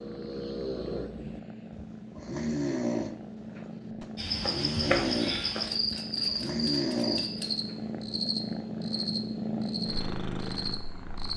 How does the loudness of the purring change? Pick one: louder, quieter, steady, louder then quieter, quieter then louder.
louder.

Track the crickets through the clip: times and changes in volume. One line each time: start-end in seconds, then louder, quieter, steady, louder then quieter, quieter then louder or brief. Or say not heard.
4.2-11.3 quieter.